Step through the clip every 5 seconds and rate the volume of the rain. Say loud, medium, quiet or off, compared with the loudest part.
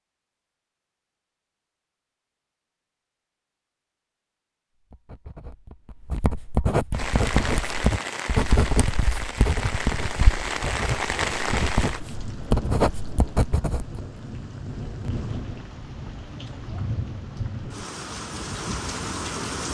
off, loud, loud, loud.